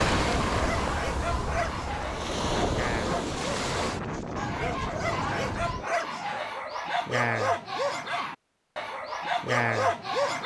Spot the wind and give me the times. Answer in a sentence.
You can hear the wind from 0.0 to 6.0 s.